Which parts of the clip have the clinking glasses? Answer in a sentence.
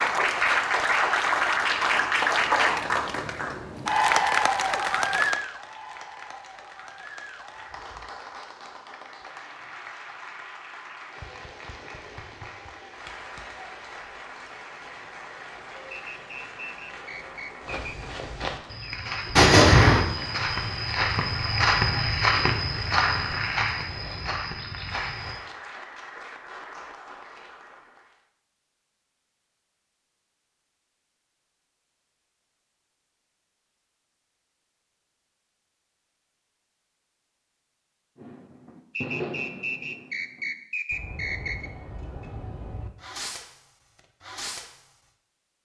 The clinking glasses can't be heard in this clip.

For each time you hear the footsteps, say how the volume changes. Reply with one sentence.
The footsteps can be heard from 17.6 to 25.4 s, getting louder then quieter.